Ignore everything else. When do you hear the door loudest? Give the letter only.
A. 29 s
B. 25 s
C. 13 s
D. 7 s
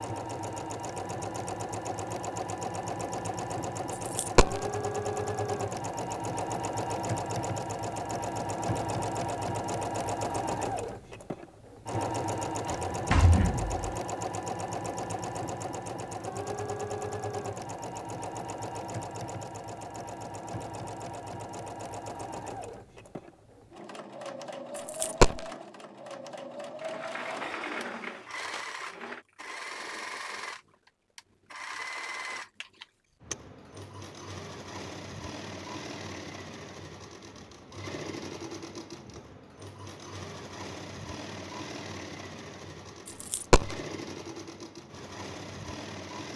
C.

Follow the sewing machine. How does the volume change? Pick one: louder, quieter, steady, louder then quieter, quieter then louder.
quieter.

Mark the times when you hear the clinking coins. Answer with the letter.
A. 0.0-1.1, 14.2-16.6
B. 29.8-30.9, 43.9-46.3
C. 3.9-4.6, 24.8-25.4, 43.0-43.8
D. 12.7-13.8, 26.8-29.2
C.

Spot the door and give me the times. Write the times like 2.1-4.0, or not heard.
12.7-13.8, 26.8-29.2.